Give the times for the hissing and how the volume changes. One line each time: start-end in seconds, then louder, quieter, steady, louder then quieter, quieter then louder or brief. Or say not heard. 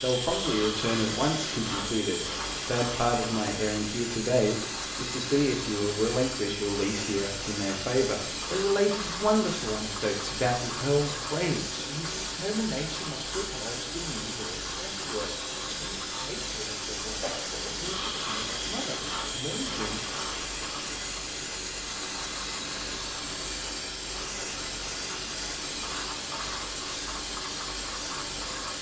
0.0-28.7 steady.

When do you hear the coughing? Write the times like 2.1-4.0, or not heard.
17.1-18.3.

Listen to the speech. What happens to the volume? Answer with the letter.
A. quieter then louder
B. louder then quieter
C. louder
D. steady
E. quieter
E.